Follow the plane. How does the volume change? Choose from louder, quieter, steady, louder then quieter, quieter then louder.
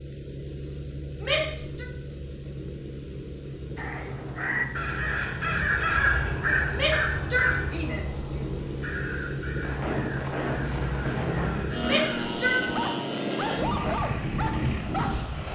louder.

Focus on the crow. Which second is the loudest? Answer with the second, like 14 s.
6 s.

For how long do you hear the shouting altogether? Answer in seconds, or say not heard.
3 s.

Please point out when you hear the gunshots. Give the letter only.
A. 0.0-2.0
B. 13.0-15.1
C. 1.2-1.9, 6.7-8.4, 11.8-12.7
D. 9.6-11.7
D.